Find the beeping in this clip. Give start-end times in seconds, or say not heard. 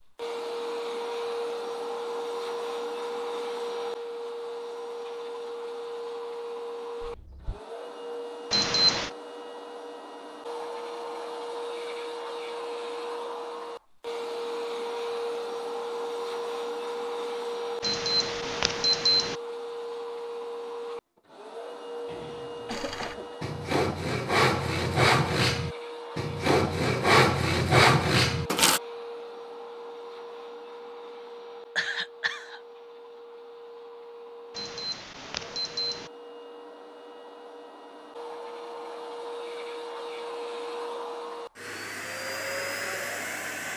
8.5-9.1, 17.8-19.4, 34.5-36.1.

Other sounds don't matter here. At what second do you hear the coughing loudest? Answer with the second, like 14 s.
32 s.